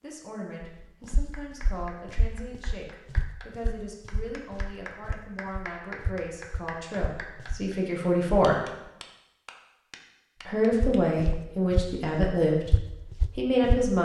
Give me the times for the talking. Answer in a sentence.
You can hear the talking from 0.0 to 8.6 s, from 10.4 to 12.8 s and from 13.3 to 14.0 s.